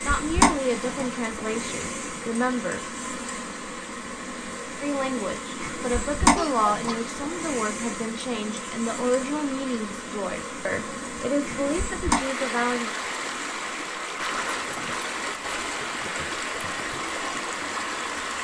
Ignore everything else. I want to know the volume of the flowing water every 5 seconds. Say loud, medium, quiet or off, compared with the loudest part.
medium, medium, loud, loud.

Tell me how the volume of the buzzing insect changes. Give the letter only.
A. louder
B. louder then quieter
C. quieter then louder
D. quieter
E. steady
D.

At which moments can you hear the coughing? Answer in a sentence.
The coughing can be heard from 6.3 to 7.1 s.